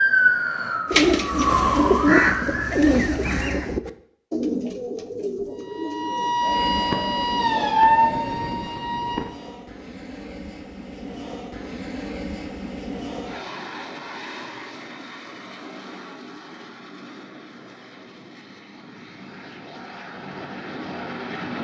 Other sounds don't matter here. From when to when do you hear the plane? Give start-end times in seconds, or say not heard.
6.3-21.5.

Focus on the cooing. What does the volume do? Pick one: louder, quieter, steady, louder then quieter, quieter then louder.
quieter.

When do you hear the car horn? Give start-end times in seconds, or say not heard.
not heard.